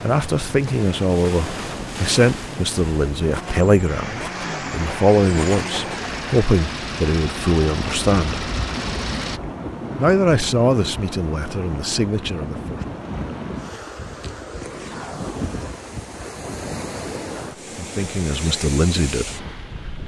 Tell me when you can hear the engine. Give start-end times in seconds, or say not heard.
2.5-9.4.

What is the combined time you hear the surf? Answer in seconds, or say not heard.
20 s.